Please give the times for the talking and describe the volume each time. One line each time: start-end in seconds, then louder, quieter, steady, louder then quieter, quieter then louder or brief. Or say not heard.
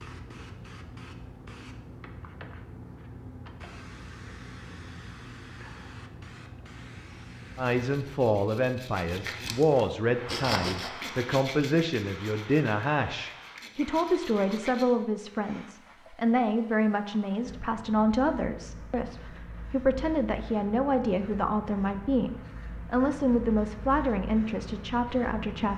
7.5-25.7 steady.